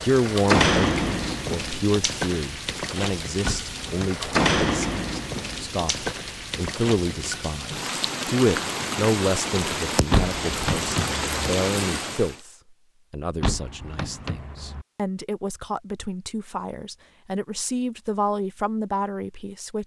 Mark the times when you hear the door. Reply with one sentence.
You can hear the door from 3.4 to 4.2 s, from 10.1 to 11.2 s and from 13.4 to 14.8 s.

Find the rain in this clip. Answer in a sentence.
The rain can be heard from 0.0 to 12.3 s.